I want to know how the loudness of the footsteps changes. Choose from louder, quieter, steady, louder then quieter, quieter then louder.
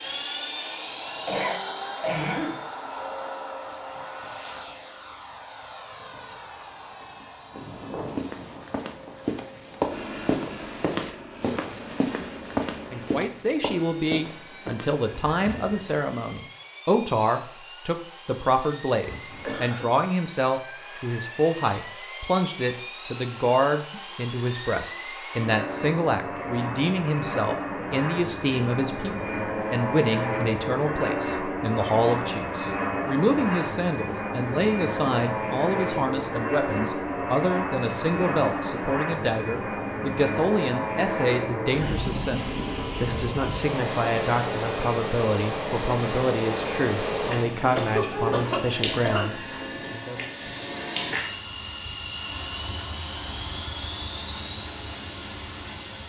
quieter.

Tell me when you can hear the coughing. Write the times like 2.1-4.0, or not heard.
1.2-2.6, 19.1-19.9, 47.8-49.6.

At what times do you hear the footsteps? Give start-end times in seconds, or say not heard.
8.1-15.9.